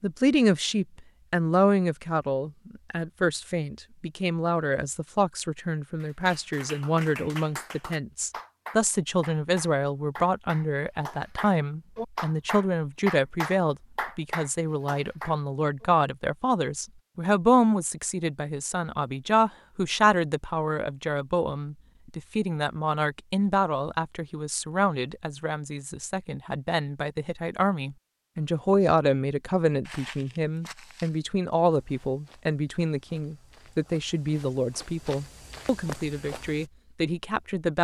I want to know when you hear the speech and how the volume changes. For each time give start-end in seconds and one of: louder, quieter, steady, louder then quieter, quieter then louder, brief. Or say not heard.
0.0-37.7 steady.